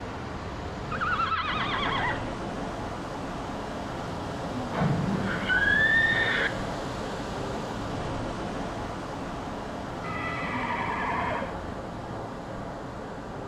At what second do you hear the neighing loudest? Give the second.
6 s.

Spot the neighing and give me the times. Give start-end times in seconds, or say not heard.
0.9-2.4, 4.7-6.5, 10.0-11.6.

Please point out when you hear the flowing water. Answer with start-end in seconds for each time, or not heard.
0.0-13.4.